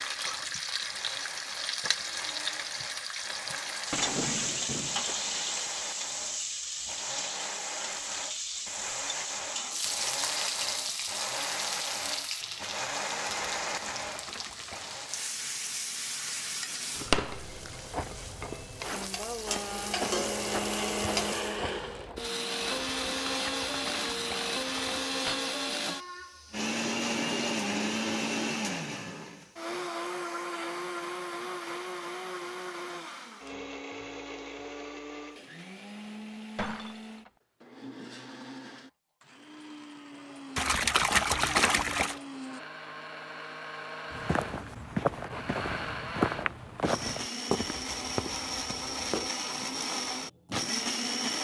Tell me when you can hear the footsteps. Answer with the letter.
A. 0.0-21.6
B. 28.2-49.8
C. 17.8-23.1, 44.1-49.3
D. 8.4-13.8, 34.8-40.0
C.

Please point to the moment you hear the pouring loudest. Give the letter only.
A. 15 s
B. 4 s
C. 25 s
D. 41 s
D.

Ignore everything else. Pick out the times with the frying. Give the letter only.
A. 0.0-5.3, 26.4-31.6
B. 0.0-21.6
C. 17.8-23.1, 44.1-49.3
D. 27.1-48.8
B.